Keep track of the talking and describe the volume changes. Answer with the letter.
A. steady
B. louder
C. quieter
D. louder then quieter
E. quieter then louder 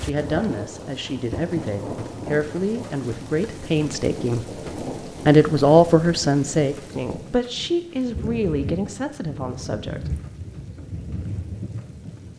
D.